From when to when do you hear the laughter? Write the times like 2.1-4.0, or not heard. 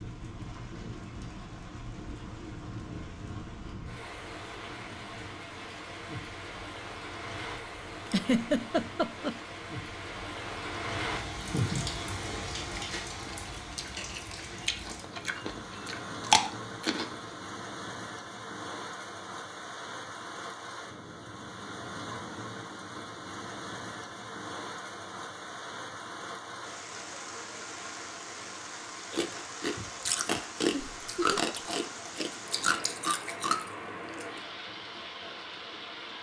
8.1-9.4, 30.7-31.4.